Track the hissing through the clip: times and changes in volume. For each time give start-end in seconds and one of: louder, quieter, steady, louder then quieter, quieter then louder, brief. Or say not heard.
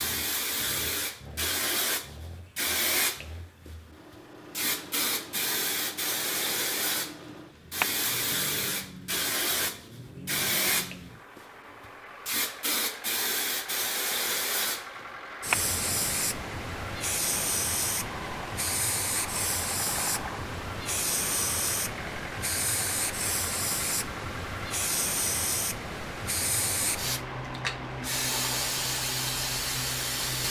0.0-30.4 steady.